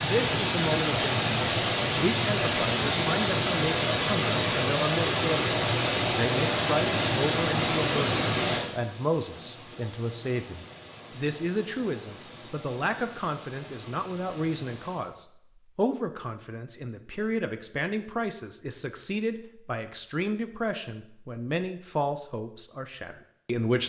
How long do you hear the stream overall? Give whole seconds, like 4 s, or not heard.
15 s.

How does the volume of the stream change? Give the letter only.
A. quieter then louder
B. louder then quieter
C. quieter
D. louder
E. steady
C.